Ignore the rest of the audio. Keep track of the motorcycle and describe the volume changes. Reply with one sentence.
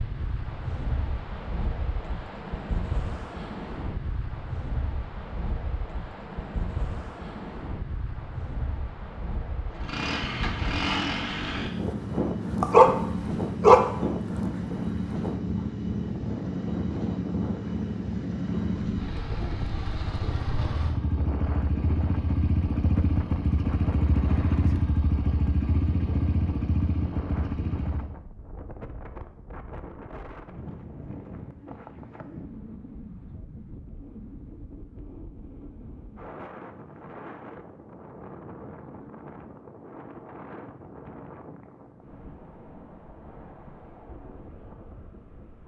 The loudness of the motorcycle stays about the same.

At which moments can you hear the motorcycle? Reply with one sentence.
You can hear the motorcycle from 9.7 to 28.1 s.